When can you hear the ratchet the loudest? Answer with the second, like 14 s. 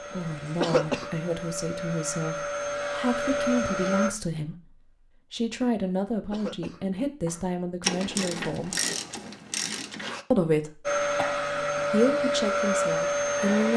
8 s.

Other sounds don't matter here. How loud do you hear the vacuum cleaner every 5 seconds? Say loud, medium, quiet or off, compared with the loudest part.
medium, off, loud.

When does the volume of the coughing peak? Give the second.
1 s.